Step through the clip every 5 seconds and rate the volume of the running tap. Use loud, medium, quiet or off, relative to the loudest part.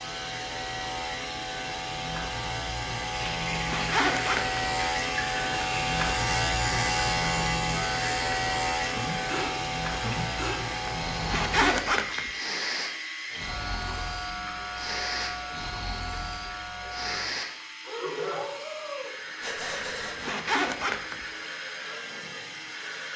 loud, loud, loud, medium, medium.